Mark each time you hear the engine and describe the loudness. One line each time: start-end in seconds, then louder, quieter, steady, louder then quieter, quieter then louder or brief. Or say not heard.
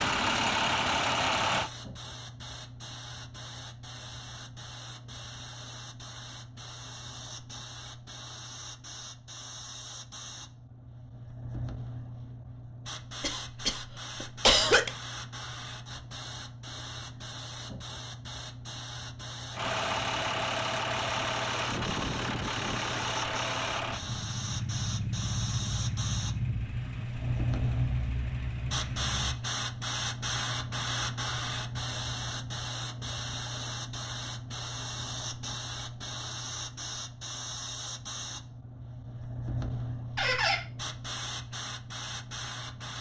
0.0-1.7 brief
19.5-29.4 quieter.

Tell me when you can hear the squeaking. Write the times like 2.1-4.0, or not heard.
40.1-40.6.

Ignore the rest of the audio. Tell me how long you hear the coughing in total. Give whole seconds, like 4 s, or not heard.
2 s.